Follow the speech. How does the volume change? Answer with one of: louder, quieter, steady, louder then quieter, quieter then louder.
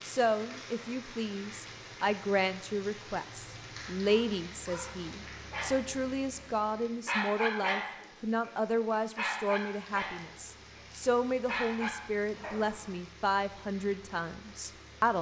steady.